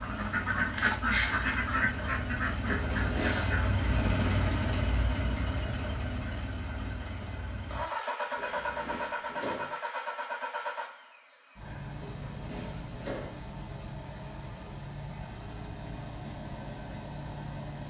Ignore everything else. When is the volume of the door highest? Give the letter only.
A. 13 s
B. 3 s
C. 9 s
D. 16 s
B.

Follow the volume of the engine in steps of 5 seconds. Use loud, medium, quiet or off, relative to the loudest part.
loud, loud, medium, medium.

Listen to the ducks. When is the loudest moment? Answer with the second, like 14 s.
1 s.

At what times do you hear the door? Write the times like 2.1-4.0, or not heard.
2.6-3.6, 8.3-9.8, 12.0-13.4.